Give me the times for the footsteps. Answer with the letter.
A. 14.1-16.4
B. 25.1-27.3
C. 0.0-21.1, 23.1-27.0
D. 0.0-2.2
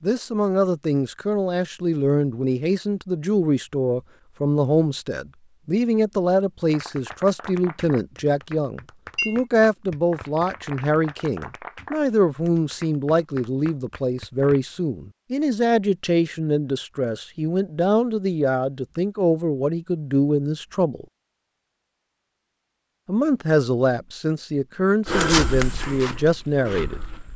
B.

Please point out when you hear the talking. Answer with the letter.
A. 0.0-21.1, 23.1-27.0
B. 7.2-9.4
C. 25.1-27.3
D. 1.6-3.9
A.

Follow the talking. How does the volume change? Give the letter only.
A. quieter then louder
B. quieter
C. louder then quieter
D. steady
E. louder
D.